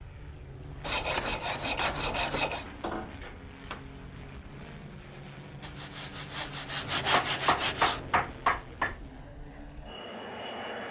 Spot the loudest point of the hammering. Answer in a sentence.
The loudest moment of the hammering is at 8 seconds.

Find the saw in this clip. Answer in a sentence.
The saw can be heard from 0.8 to 2.6 s and from 5.6 to 8.4 s.